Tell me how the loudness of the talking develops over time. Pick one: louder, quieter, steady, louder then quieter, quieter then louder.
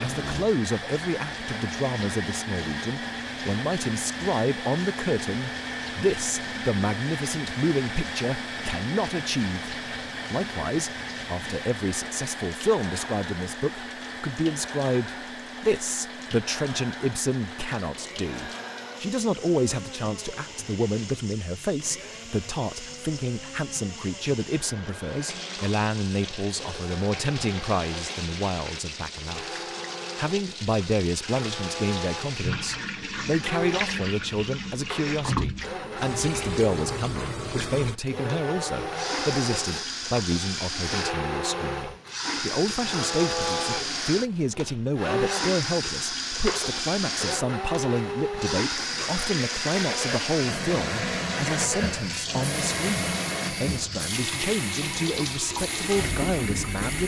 steady.